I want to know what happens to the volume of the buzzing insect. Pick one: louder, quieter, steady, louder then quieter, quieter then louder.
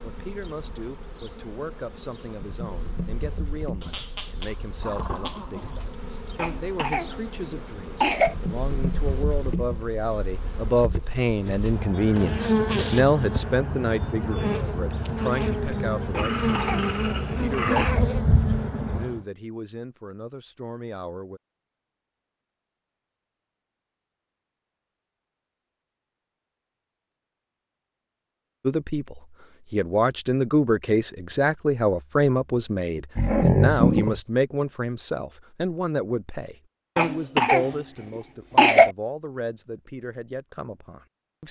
louder.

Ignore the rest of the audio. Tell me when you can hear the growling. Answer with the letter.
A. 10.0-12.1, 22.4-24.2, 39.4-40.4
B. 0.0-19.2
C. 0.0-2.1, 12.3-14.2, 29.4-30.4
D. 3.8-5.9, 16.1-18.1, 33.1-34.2
D.